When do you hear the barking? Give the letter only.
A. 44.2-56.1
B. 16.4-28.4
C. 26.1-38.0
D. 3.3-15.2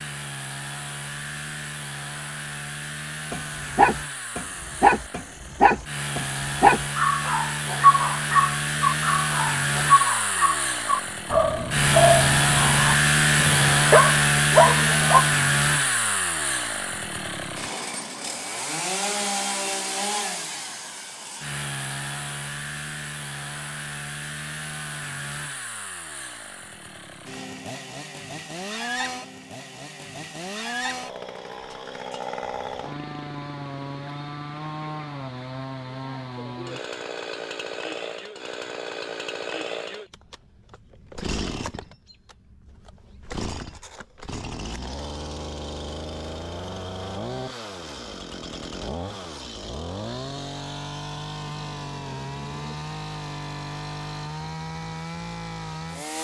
D.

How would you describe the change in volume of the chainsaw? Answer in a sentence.
The volume of the chainsaw goes up, then down.